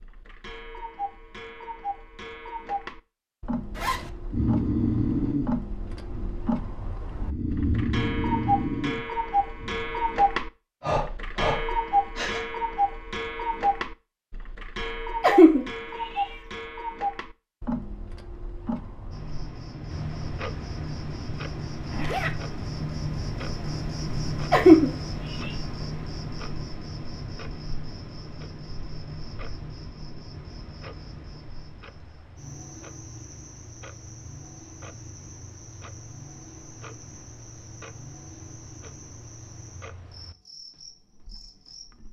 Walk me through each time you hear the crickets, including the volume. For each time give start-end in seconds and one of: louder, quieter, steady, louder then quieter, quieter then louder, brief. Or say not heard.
19.1-42.0 quieter.